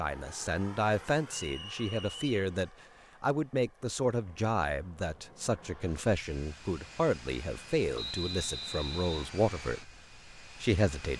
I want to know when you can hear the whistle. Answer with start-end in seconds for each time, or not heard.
1.4-2.2, 8.0-9.2.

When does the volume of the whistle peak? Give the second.
8 s.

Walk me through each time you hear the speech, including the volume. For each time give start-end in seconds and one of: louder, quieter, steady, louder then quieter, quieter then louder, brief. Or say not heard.
0.0-11.1 steady.